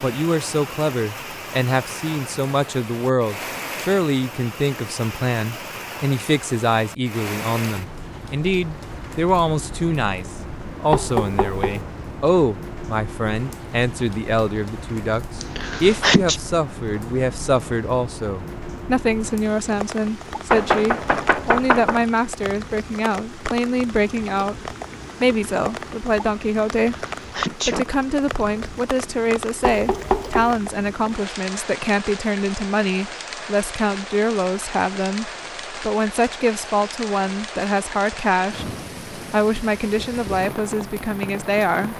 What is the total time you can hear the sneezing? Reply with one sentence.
You can hear the sneezing for 2 seconds altogether.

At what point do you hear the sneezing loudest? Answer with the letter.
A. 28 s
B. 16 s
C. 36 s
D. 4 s
B.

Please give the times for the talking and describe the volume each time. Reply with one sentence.
The talking can be heard from 0.0 to 41.9 s, at a steady volume.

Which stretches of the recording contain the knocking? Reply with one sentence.
The knocking can be heard from 10.9 to 11.8 s, from 20.5 to 22.1 s and from 29.6 to 30.6 s.